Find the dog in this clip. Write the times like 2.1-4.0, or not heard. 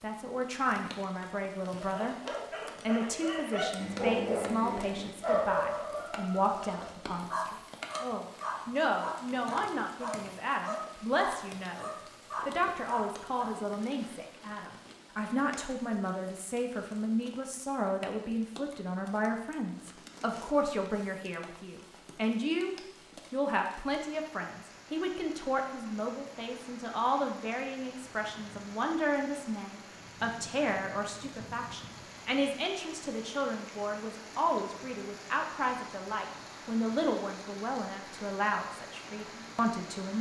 1.8-13.6.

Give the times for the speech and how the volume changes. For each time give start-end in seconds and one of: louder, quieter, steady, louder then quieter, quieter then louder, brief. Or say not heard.
0.0-40.1 steady.